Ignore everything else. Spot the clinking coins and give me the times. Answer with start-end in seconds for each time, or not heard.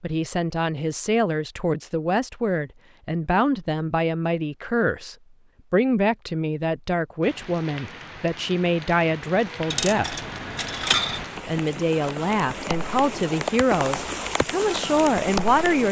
9.7-11.2.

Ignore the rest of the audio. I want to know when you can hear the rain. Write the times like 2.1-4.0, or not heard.
7.2-15.8.